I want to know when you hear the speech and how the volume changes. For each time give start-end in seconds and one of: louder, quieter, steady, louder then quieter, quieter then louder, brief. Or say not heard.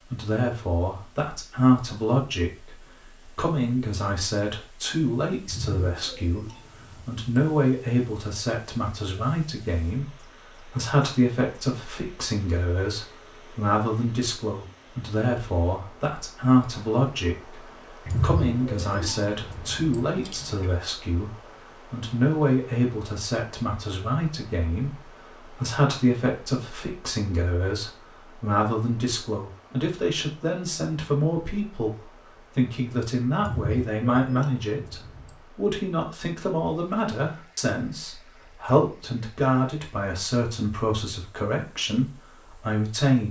0.0-43.2 steady.